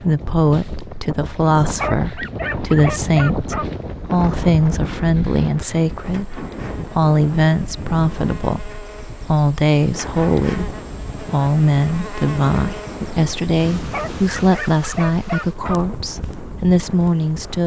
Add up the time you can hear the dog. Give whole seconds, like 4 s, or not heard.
4 s.